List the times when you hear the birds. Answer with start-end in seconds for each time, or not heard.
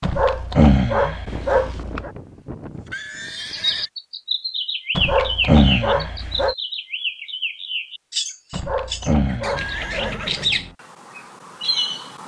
3.3-12.2.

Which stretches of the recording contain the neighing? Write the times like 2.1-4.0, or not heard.
1.2-3.9, 9.6-10.8.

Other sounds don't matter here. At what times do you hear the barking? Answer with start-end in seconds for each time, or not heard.
0.0-2.1, 5.0-6.5, 8.5-10.2.